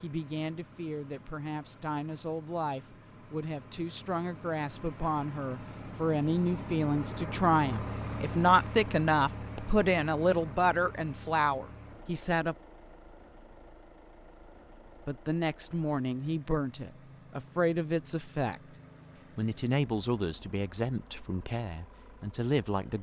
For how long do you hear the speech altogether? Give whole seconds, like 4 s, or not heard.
20 s.